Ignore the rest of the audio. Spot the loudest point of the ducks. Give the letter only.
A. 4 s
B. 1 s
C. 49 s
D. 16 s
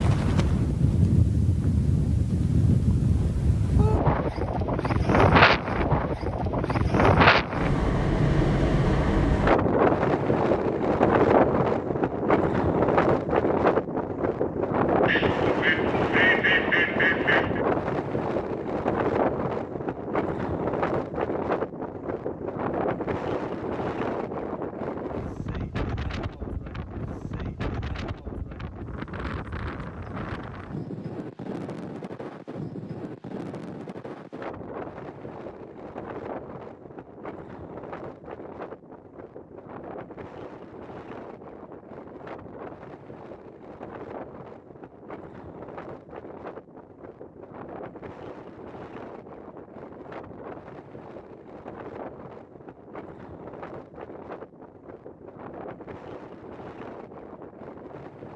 D.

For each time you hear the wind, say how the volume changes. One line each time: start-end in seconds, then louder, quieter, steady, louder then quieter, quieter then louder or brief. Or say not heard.
0.0-58.3 quieter.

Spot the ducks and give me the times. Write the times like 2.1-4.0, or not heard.
15.1-17.6.